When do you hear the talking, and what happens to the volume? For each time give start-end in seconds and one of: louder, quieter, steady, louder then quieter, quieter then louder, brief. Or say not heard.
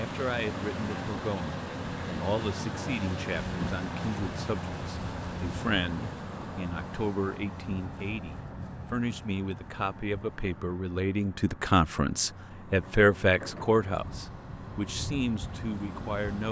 0.0-16.4 louder.